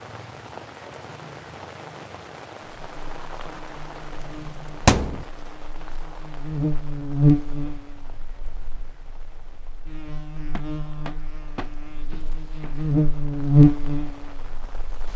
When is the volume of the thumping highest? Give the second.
5 s.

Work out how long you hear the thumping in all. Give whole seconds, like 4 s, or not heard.
3 s.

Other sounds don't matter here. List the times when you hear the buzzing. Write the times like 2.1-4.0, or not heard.
2.6-15.1.